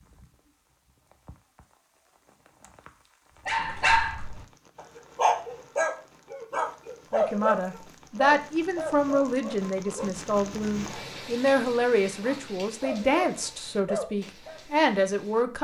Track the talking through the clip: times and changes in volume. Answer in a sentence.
You can hear the talking from 7.1 to 15.5 s, at a steady volume.